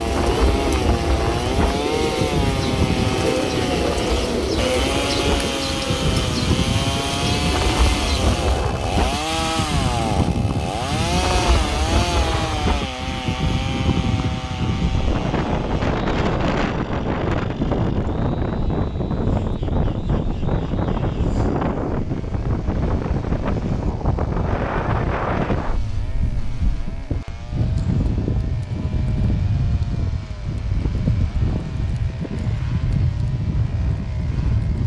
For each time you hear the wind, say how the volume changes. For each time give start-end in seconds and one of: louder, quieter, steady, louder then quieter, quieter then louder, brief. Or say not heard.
0.0-34.8 steady.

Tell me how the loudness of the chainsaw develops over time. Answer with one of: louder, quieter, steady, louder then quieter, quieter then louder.
quieter.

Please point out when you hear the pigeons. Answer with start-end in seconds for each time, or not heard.
0.0-8.4.